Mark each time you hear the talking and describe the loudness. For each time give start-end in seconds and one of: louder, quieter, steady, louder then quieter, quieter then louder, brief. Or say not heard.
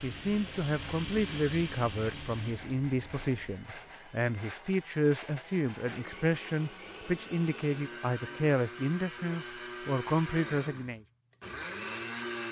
0.0-11.0 steady.